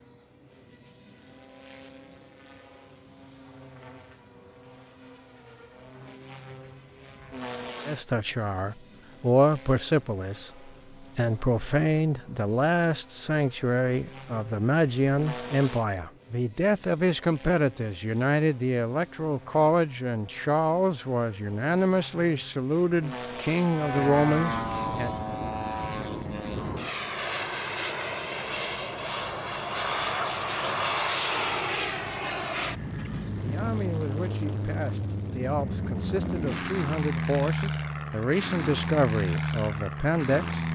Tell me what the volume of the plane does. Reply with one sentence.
The volume of the plane goes up.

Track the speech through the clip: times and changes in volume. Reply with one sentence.
The speech can be heard from 7.8 to 25.1 s, at a steady volume; and from 33.4 to 40.6 s, getting louder.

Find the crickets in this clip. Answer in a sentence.
You can't hear the crickets here.